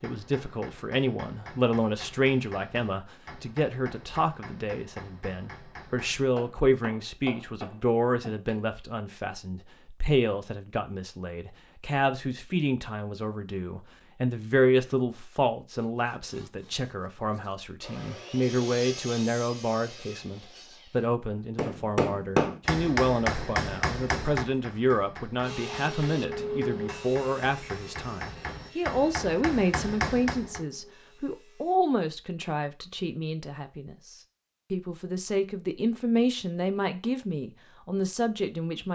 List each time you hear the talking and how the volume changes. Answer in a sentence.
You can hear the talking from 0.0 to 38.8 s, at a steady volume.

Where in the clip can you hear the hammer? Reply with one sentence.
The hammer can be heard from 0.0 to 8.6 s and from 21.6 to 30.6 s.